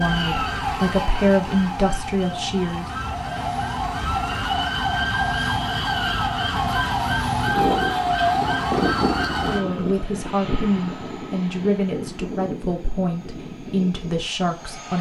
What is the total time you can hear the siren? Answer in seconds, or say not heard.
10 s.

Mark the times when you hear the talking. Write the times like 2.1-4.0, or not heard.
0.0-2.9, 9.4-14.9.